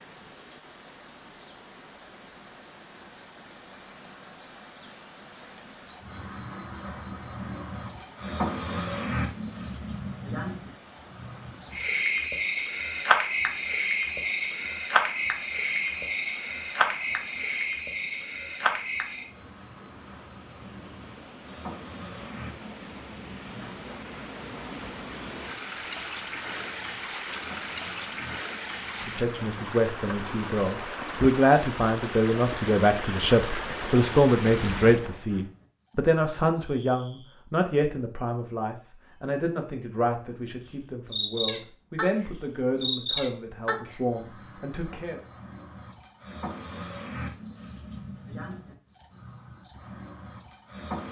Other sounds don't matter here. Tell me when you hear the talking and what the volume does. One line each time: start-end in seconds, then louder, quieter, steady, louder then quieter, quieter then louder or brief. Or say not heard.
29.0-45.2 quieter.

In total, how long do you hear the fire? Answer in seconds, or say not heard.
not heard.